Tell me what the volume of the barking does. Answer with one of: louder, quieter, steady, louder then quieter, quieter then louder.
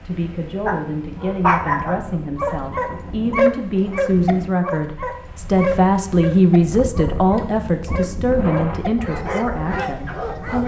quieter.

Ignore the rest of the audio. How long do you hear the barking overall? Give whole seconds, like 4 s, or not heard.
10 s.